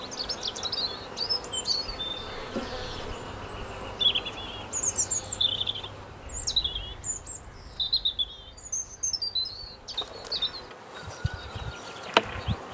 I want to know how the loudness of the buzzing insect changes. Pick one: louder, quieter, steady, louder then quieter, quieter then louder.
quieter then louder.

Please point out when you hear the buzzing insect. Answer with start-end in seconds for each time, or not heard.
0.0-12.6.